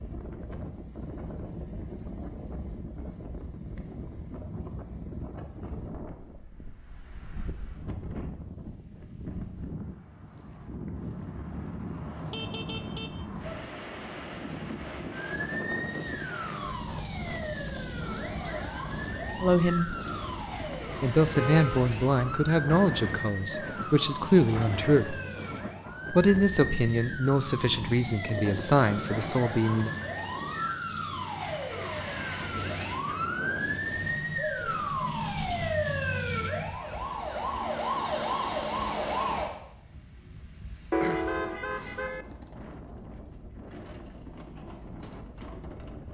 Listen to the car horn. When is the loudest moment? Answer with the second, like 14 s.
41 s.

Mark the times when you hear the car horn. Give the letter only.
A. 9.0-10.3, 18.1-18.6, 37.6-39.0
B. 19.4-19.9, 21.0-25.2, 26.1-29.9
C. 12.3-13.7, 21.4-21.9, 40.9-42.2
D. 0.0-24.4
C.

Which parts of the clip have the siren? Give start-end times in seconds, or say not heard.
15.1-39.5.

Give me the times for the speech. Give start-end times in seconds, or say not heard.
19.4-19.9, 21.0-25.2, 26.1-29.9.